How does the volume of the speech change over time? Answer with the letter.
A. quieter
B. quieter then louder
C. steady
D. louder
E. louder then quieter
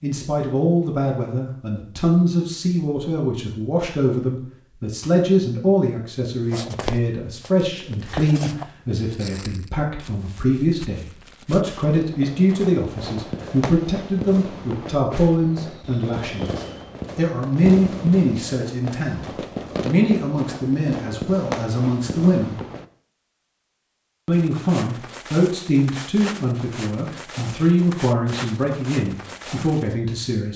C.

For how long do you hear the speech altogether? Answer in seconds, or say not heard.
29 s.